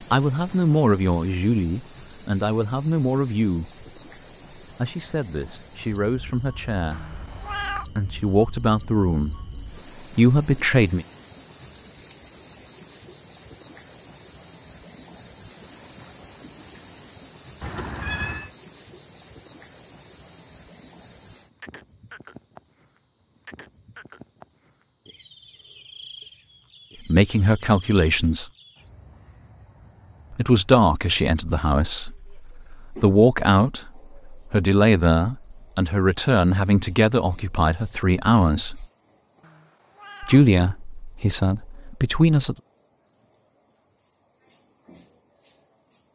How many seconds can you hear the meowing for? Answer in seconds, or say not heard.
3 s.